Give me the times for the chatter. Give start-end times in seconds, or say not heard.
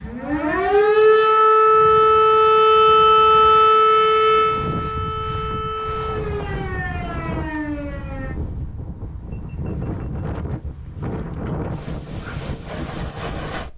not heard.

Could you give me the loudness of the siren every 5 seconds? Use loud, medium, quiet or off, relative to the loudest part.
loud, quiet, off.